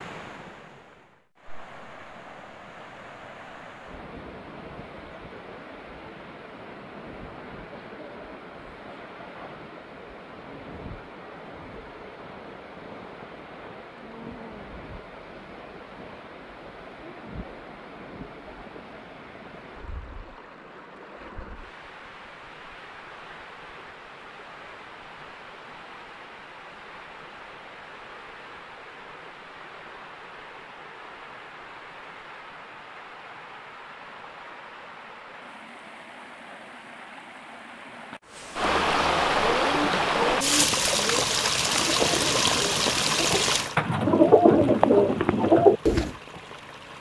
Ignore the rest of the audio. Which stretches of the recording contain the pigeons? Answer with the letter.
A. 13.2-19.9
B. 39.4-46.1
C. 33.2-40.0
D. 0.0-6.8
B.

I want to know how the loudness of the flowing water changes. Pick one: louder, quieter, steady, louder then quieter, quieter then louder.
louder.